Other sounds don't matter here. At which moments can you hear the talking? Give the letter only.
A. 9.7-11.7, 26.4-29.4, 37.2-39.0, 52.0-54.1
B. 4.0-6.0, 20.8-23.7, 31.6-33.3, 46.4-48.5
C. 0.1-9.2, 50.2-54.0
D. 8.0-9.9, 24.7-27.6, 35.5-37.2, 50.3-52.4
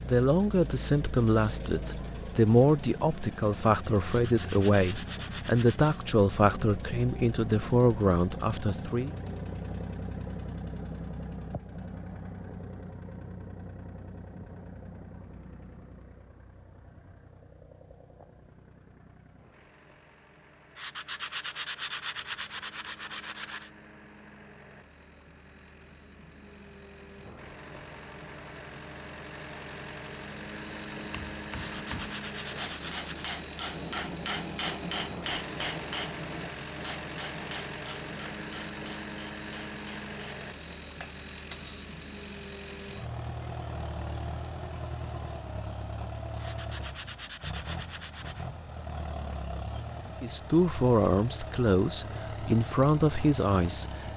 C.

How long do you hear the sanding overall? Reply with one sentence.
You can hear the sanding for 9 seconds altogether.